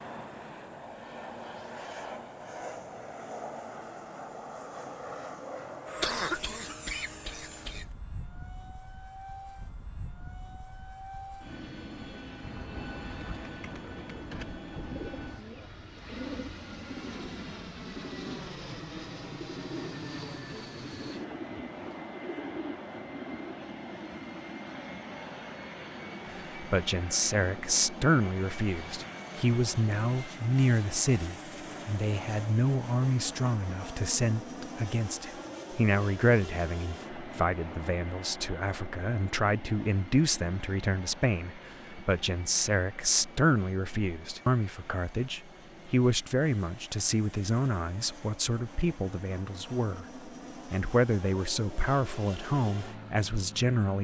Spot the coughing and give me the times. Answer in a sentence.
The coughing can be heard from 6.0 to 7.9 s.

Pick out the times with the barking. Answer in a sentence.
The barking can't be heard in this clip.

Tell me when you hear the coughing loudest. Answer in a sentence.
The volume of the coughing peaks at 6 seconds.